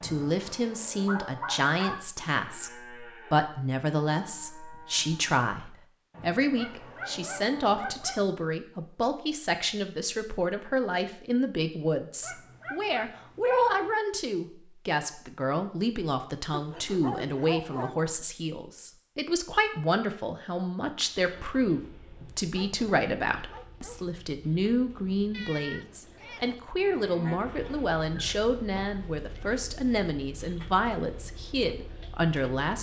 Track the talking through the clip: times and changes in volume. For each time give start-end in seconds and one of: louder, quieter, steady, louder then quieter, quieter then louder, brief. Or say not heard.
0.0-32.7 steady.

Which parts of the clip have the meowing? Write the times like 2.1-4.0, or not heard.
25.3-26.5.